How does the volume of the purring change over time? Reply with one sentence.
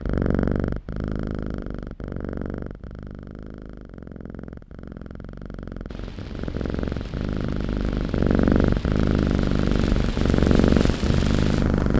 The volume of the purring goes down, then up.